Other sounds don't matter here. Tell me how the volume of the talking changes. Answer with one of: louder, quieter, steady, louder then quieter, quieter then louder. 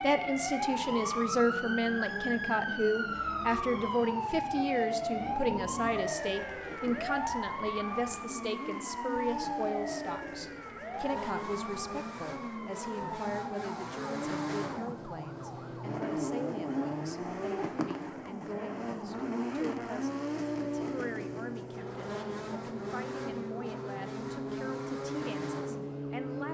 quieter.